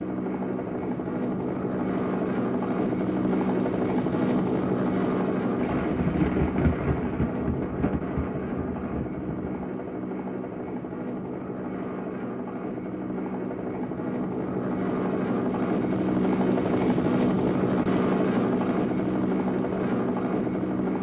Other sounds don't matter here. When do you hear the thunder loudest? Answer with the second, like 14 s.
6 s.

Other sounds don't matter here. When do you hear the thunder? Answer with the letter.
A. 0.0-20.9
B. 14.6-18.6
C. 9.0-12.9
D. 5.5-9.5
D.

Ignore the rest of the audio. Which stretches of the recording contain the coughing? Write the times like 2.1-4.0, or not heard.
not heard.